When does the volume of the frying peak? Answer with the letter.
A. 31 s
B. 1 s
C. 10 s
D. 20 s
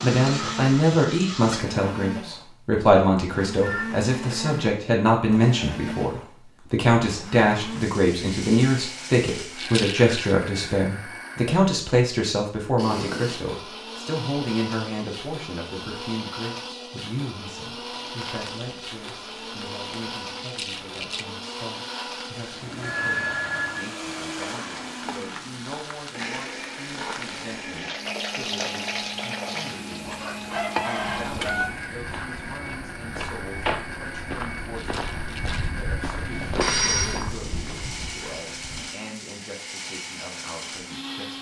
A.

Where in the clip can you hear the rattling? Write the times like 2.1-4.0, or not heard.
9.6-10.2, 20.4-21.2, 34.8-35.7.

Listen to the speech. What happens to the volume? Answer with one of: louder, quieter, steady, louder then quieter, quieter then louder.
quieter.